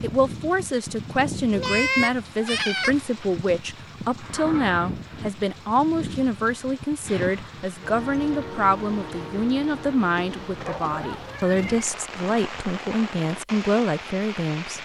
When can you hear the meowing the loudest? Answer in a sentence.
The volume of the meowing peaks at 2 seconds.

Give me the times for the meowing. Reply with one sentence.
You can hear the meowing from 1.5 to 3.0 s and from 11.2 to 11.9 s.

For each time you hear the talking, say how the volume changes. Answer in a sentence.
The talking can be heard from 0.0 to 14.7 s, at a steady volume.